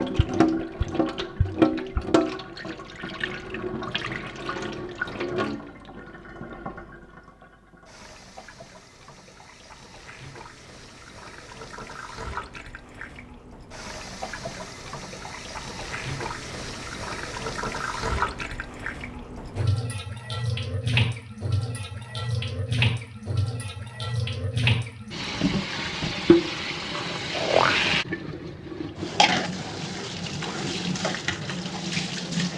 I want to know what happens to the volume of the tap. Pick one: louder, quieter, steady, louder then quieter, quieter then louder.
quieter then louder.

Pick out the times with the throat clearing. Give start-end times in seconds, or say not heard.
27.3-27.8.